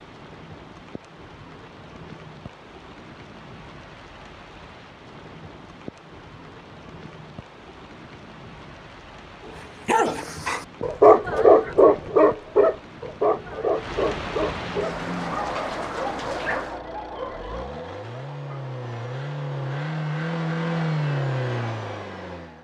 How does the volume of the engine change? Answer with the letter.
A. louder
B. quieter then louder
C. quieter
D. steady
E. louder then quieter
A.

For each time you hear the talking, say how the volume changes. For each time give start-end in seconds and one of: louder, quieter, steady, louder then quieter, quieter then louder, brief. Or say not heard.
not heard.